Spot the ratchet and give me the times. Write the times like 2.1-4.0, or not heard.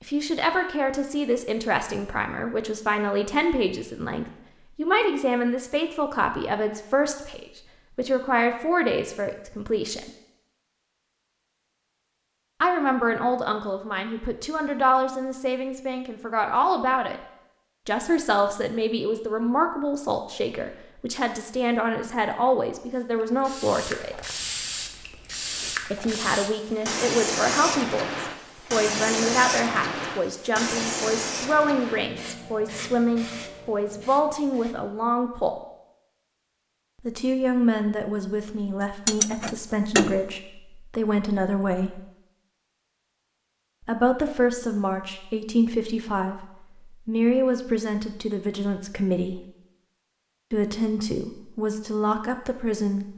38.8-40.2.